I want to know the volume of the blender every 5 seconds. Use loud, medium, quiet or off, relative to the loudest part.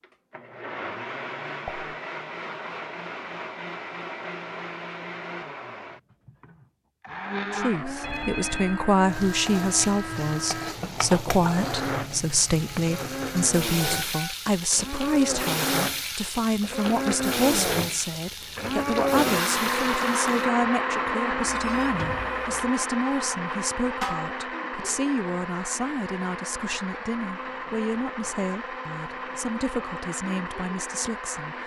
medium, medium, medium, loud, loud, medium, medium.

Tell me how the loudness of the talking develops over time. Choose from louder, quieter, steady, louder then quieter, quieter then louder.
quieter.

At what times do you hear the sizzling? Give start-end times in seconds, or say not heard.
9.1-20.5.